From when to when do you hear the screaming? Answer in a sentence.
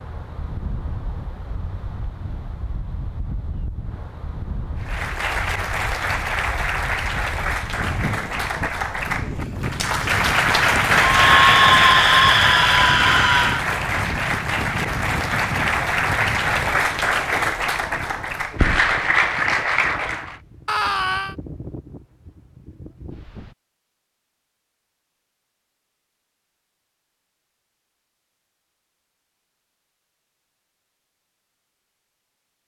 The screaming can be heard from 11.0 to 13.7 s and from 20.6 to 21.4 s.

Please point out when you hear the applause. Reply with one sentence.
You can hear the applause from 4.8 to 20.4 s.